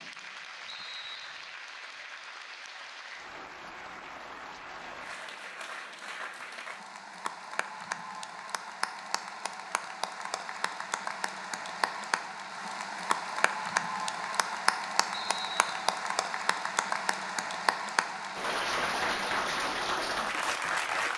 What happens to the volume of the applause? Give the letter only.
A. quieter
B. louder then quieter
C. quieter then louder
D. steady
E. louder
E.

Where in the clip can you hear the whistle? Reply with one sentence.
The whistle can be heard from 0.7 to 1.6 s and from 15.1 to 16.0 s.